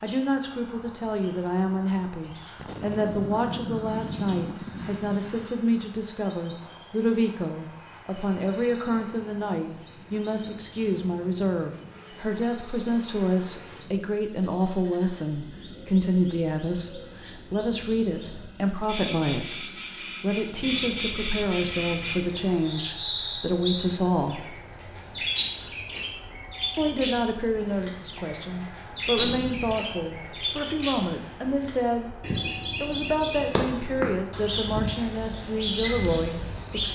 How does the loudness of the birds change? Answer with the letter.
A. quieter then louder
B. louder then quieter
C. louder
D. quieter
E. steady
C.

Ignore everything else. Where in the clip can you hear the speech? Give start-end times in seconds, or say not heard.
0.0-24.6, 26.8-32.1, 32.8-36.9.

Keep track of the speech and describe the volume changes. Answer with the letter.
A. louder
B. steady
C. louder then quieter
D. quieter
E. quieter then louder
B.